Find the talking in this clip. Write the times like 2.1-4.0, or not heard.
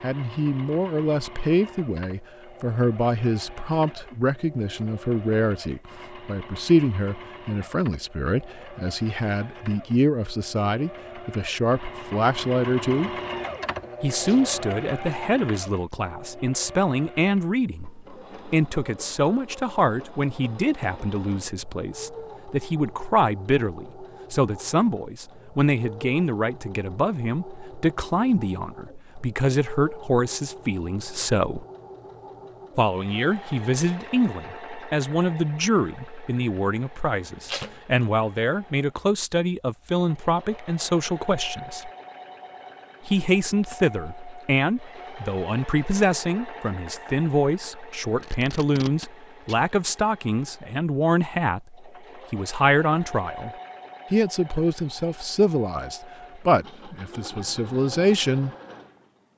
0.0-13.1, 14.0-31.6, 32.8-41.9, 43.0-53.5, 54.1-58.5.